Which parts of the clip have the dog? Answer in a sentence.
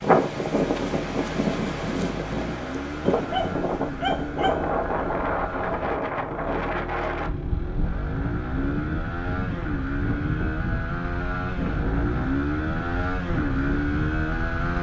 You can hear the dog from 3.1 to 4.7 s.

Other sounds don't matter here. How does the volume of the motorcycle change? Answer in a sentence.
The volume of the motorcycle goes up.